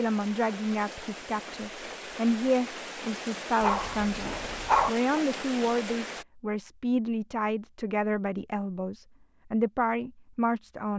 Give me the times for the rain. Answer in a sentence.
The rain can be heard from 0.0 to 6.2 s.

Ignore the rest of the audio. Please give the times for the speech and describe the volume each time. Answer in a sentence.
You can hear the speech from 0.0 to 10.9 s, at a steady volume.